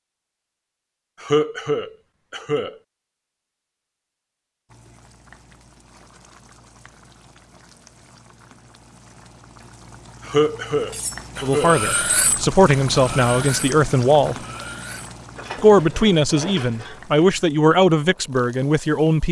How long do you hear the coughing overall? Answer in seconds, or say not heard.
3 s.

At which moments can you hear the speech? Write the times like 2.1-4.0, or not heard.
11.4-14.3, 15.6-19.2.